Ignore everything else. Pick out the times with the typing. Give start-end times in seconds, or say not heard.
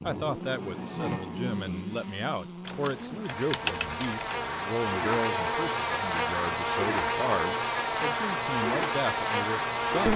2.6-4.3.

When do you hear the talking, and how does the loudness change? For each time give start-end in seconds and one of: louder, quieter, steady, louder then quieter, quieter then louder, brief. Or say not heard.
0.0-10.1 steady.